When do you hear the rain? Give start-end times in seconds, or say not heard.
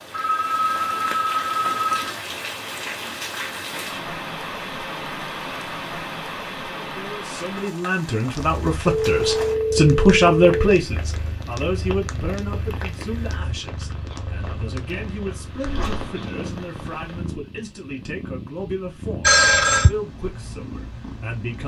0.0-17.4.